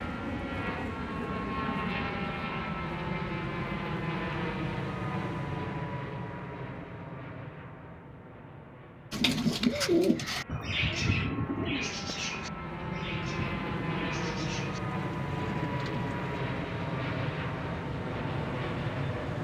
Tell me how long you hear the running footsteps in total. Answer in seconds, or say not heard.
not heard.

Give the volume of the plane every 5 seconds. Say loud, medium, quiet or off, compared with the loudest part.
loud, medium, loud, loud.